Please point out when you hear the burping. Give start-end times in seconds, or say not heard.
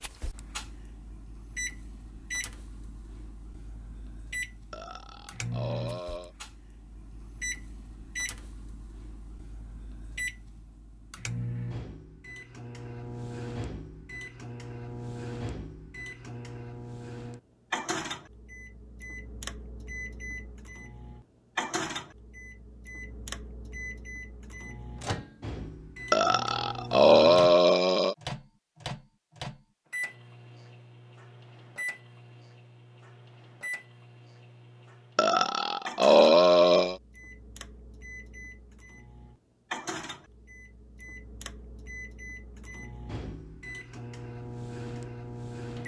4.7-6.3, 26.1-28.1, 35.1-37.0.